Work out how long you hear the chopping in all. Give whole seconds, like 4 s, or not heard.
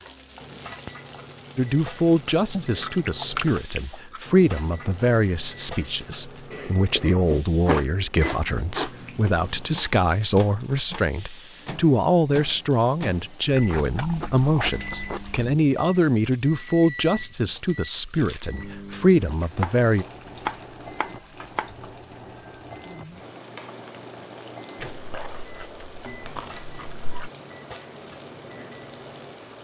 2 s.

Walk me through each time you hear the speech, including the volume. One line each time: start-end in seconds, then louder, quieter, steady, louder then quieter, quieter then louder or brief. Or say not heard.
1.6-20.1 steady.